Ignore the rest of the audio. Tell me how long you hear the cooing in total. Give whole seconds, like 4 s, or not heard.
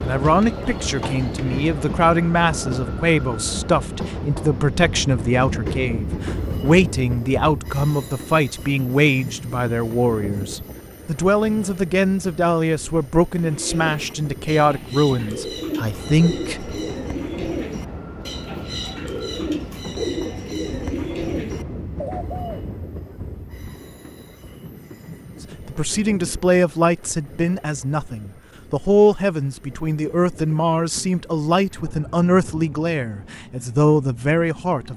11 s.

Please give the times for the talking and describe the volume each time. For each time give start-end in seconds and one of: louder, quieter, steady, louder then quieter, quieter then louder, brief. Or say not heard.
0.0-16.8 steady
25.6-34.9 steady.